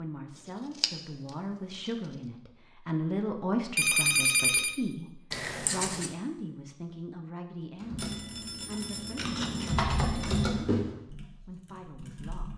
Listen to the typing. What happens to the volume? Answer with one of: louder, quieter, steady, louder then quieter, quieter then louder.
louder then quieter.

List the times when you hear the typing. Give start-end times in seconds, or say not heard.
7.8-12.5.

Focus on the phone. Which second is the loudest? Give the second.
4 s.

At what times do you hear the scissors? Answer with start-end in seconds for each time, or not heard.
0.8-1.9, 5.3-6.2, 9.2-9.9.